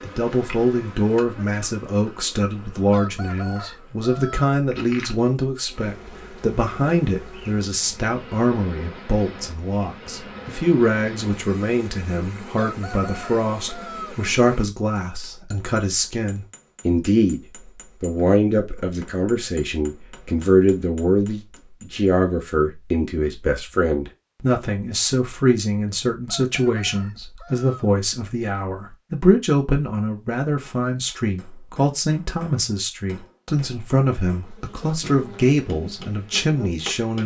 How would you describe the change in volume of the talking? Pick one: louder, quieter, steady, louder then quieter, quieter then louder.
steady.